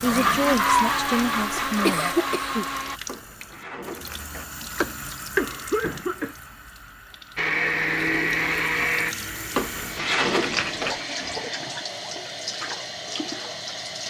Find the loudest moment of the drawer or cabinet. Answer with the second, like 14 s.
10 s.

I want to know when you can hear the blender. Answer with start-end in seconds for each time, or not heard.
0.0-3.0, 7.3-11.6.